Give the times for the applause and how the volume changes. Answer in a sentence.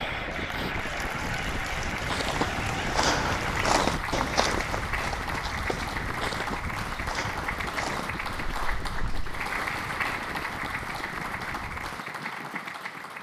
You can hear the applause from 0.0 to 13.1 s, at a steady volume.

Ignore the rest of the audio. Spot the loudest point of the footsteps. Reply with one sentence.
The volume of the footsteps peaks at 4 seconds.